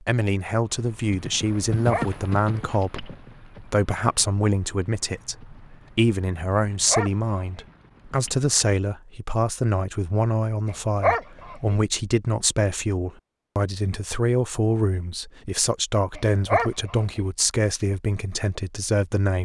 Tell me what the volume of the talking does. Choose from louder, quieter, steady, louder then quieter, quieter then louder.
steady.